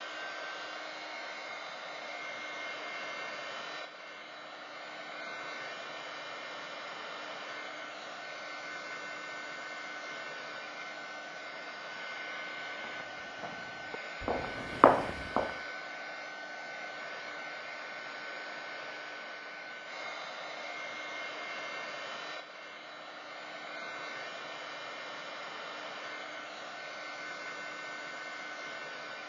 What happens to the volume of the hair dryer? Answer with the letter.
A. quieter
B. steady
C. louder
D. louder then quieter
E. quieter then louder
B.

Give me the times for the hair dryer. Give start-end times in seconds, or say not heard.
0.0-29.2.